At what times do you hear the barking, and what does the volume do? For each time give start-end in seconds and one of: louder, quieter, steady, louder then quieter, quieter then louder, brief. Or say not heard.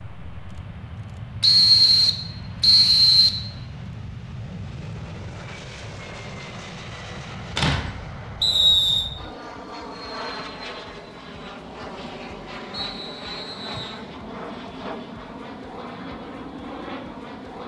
not heard.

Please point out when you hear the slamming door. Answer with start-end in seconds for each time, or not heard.
7.5-8.1.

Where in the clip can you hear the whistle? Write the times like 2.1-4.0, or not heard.
1.4-3.4, 8.4-9.1, 12.7-14.0.